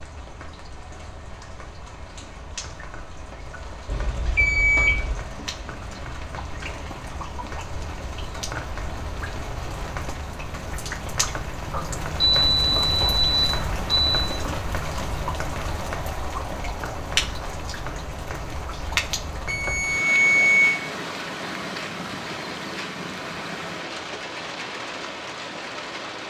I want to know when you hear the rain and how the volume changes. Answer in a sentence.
You can hear the rain from 0.0 to 26.2 s, getting louder.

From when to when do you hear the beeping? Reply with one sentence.
You can hear the beeping from 3.9 to 5.2 s, from 11.7 to 14.2 s and from 19.4 to 20.8 s.